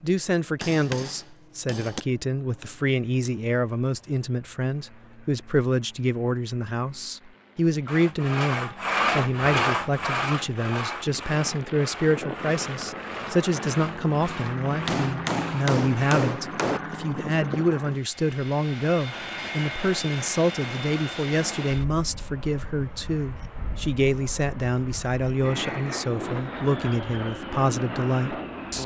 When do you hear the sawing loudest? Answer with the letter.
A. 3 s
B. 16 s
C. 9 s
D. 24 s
C.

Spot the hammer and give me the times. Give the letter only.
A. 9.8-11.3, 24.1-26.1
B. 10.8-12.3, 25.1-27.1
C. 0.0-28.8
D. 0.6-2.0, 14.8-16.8
D.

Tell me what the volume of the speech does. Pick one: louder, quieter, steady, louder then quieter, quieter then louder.
steady.